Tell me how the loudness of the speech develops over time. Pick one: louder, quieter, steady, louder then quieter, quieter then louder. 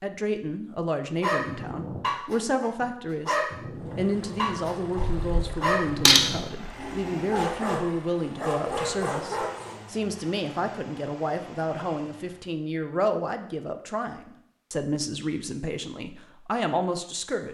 steady.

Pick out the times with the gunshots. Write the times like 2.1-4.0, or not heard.
5.0-6.7.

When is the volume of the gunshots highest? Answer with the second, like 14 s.
6 s.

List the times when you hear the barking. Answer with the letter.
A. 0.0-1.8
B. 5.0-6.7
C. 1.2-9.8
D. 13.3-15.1
C.